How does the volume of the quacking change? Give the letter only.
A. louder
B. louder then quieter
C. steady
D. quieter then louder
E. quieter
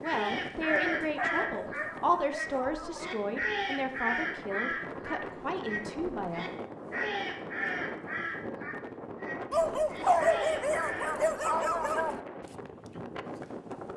E.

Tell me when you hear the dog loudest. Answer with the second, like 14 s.
10 s.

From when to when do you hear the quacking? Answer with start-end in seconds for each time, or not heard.
0.0-11.2.